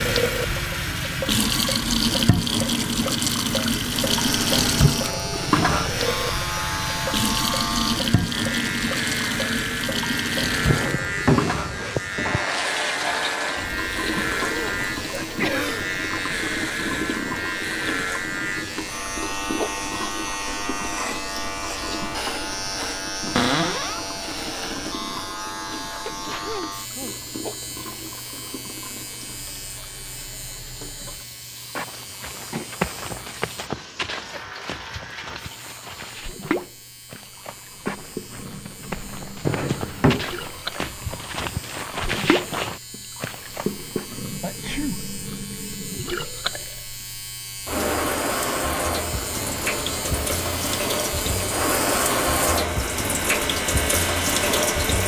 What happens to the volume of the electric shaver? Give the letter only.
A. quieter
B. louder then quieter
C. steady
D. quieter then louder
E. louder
D.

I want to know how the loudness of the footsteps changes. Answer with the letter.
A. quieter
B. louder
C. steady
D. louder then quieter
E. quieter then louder
E.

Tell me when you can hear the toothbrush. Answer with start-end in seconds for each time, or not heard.
not heard.